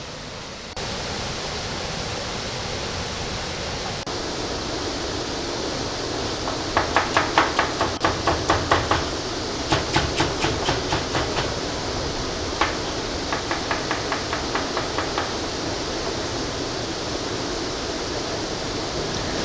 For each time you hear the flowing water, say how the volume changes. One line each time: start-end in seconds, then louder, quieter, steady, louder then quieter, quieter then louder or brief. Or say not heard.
0.0-19.3 steady.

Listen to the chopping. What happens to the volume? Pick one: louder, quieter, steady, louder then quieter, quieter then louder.
quieter.